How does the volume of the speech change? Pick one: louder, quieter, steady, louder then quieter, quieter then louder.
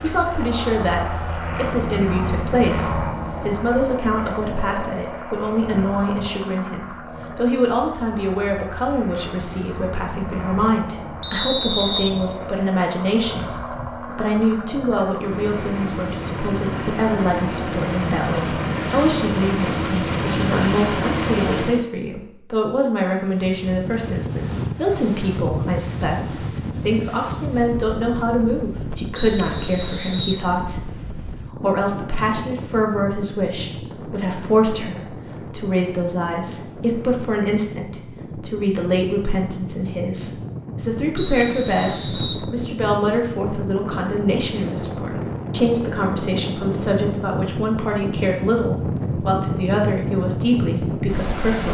steady.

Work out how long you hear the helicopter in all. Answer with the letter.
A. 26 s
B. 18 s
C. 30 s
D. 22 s
D.